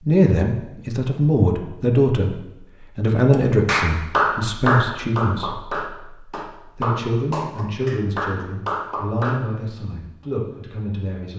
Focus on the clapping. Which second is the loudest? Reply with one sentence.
The loudest moment of the clapping is at 4 seconds.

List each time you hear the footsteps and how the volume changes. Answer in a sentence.
The footsteps can't be heard in this clip.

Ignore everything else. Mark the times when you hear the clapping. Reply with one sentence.
The clapping can be heard from 3.3 to 9.4 s.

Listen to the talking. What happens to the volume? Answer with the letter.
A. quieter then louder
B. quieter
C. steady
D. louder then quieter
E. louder
B.